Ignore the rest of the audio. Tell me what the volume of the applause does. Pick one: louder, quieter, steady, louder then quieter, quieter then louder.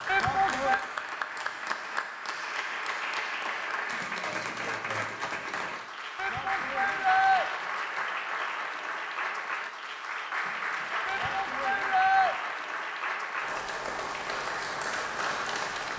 steady.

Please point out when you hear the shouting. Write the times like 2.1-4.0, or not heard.
0.1-0.8, 6.2-7.5, 11.1-12.3.